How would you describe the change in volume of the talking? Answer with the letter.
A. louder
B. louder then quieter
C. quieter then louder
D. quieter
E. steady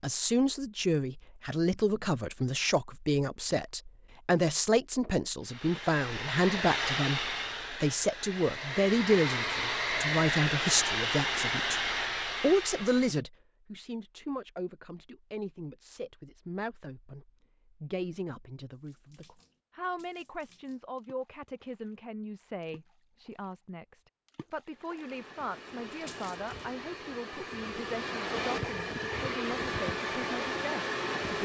D.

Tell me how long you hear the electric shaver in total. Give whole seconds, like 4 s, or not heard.
not heard.